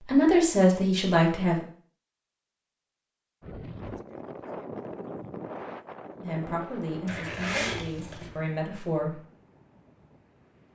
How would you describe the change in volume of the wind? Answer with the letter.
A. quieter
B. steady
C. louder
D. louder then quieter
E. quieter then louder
A.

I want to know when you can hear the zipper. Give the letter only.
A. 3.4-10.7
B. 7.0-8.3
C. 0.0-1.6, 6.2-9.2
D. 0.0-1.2
B.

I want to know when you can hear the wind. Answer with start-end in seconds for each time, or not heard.
3.4-10.7.